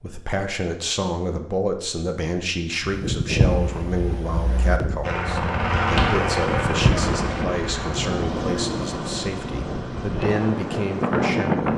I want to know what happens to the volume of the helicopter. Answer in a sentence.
The loudness of the helicopter goes down.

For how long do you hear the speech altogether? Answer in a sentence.
The speech can be heard for 12 seconds in total.